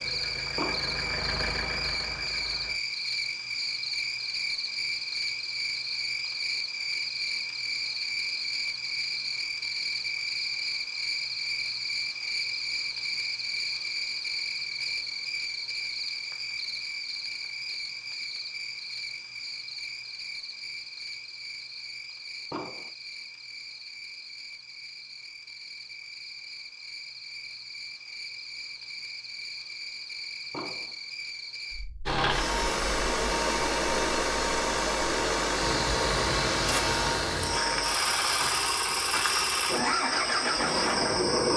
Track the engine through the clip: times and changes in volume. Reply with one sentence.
The engine can be heard briefly from 0.0 to 2.8 s; and from 32.0 to 41.5 s, at a steady volume.